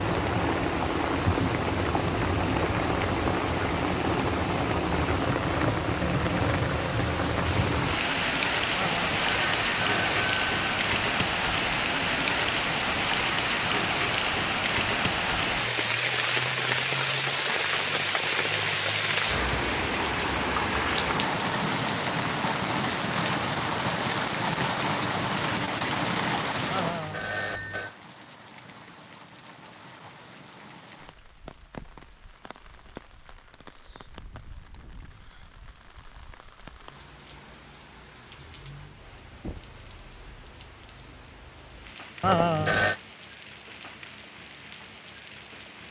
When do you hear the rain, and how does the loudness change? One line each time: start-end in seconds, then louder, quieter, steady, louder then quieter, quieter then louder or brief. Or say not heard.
0.0-45.8 quieter.